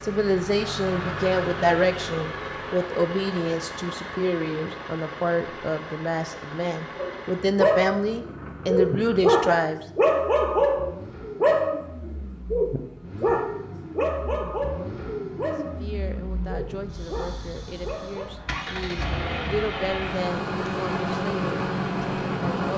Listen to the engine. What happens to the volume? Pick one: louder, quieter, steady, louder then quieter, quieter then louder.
quieter then louder.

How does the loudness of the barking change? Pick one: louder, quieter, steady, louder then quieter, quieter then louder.
quieter.